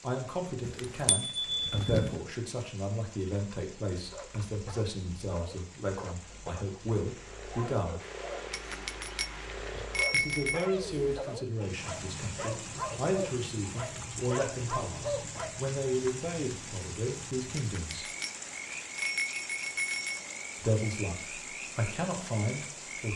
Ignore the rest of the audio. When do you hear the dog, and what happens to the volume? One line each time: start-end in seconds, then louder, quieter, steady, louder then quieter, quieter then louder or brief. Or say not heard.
4.0-15.7 louder.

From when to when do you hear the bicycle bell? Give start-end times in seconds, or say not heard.
0.7-2.2, 8.5-10.7, 17.6-20.2.